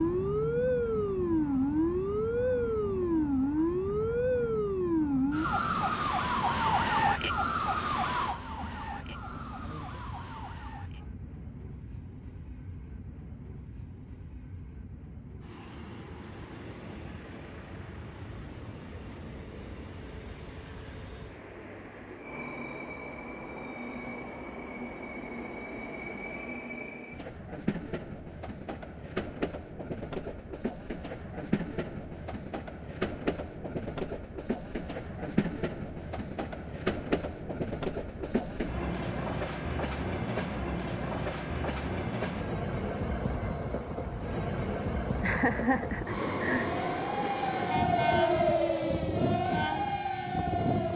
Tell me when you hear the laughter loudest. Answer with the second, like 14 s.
46 s.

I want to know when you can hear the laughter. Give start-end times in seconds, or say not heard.
45.2-46.8.